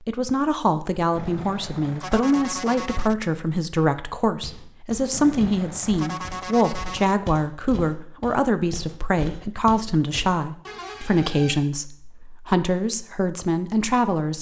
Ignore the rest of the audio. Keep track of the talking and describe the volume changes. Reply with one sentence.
The volume of the talking stays about the same.